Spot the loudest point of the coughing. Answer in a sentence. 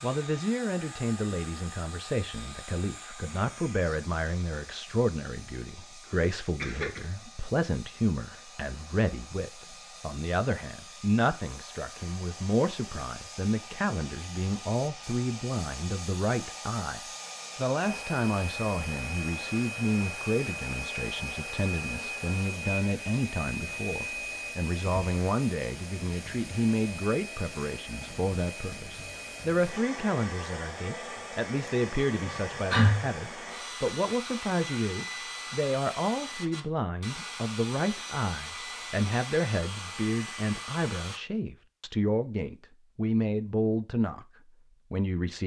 The volume of the coughing peaks at 33 seconds.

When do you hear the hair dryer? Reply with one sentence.
The hair dryer can be heard from 0.0 to 41.2 s.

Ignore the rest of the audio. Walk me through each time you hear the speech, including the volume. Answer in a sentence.
The speech can be heard from 0.0 to 44.2 s, at a steady volume; and briefly from 44.9 to 45.4 s.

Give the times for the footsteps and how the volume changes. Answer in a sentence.
You can't hear the footsteps here.